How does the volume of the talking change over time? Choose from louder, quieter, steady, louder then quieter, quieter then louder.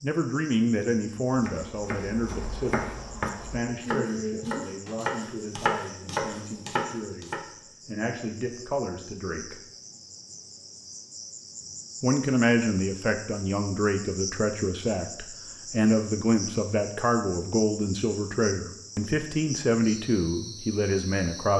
quieter then louder.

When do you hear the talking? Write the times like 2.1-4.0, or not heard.
0.0-9.6, 12.0-21.5.